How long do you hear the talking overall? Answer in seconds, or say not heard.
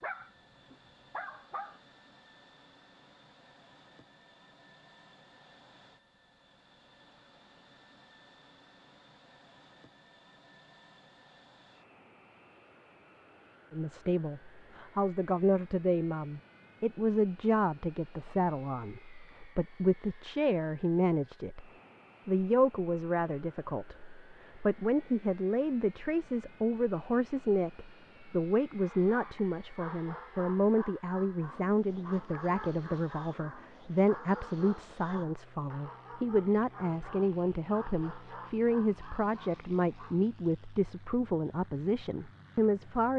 29 s.